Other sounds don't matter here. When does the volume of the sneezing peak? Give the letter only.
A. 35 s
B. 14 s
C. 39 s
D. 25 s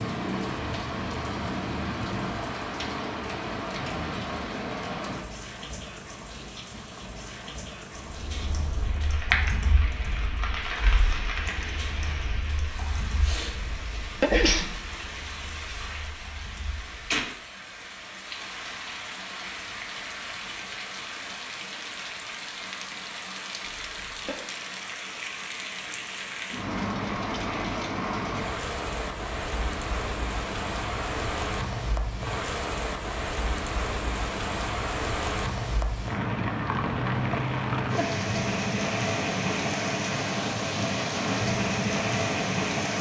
B.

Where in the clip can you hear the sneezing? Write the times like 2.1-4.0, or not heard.
13.7-14.8, 23.6-24.4.